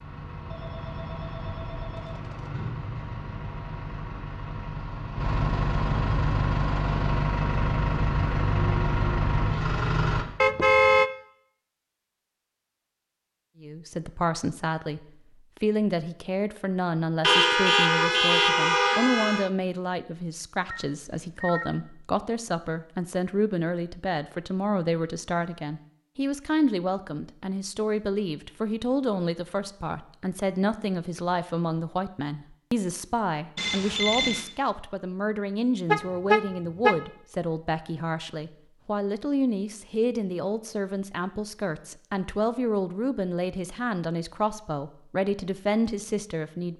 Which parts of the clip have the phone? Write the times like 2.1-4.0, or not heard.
0.5-2.5, 20.6-21.7, 33.5-34.5.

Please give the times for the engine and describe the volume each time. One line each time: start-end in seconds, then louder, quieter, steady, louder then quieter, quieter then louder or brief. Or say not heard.
0.0-10.2 louder.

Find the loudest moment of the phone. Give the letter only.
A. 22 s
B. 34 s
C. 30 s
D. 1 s
B.